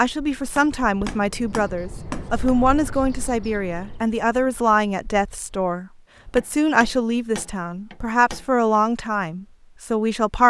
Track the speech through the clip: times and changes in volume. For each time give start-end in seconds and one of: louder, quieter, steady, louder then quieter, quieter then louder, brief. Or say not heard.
0.0-10.4 steady.